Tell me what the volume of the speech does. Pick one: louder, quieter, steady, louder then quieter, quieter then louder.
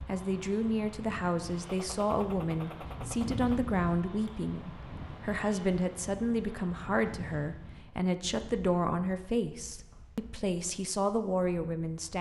steady.